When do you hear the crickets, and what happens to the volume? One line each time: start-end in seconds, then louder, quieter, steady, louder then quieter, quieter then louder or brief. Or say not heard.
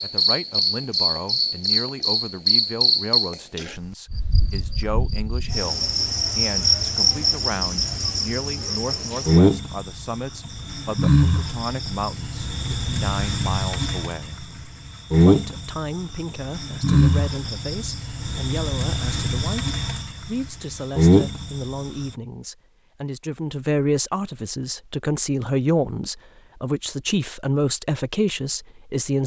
0.0-22.1 steady.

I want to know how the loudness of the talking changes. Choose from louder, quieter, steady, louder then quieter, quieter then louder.
louder.